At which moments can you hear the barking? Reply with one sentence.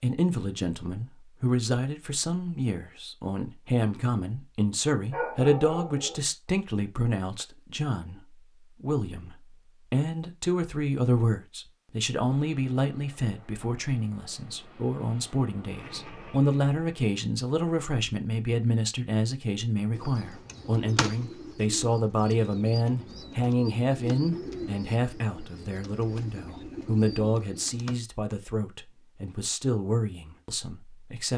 The barking can be heard from 5.1 to 6.2 s.